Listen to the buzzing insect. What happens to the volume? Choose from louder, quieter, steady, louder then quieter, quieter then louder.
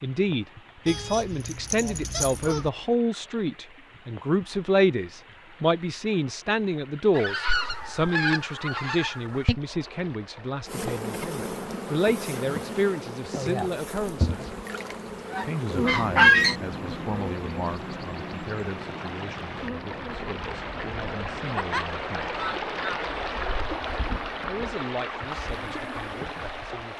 quieter.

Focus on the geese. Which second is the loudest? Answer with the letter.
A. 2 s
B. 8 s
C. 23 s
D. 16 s
D.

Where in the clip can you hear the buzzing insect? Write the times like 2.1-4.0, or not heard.
10.7-26.7.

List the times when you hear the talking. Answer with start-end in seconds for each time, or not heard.
0.0-14.5, 15.4-22.3, 24.4-26.9.